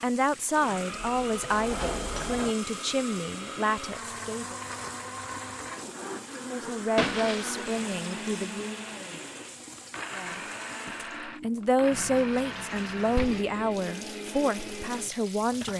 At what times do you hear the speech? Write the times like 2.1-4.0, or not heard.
0.0-4.5, 6.4-8.8, 10.2-15.7.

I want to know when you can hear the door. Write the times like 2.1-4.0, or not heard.
1.1-2.5.